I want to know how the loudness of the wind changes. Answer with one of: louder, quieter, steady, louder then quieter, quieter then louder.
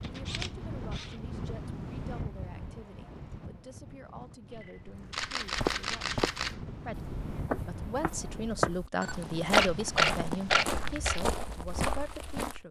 quieter then louder.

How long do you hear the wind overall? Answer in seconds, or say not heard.
9 s.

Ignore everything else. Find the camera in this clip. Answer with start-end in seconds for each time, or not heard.
0.0-1.2, 4.5-6.7, 9.0-11.2.